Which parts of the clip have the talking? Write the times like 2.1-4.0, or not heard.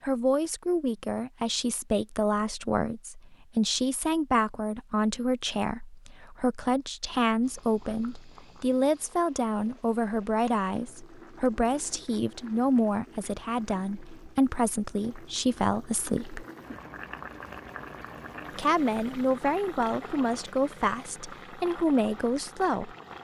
0.0-16.4, 18.6-22.9.